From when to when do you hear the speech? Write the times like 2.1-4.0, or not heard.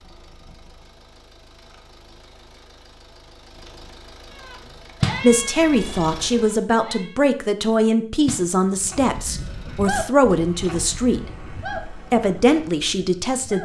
5.2-13.6.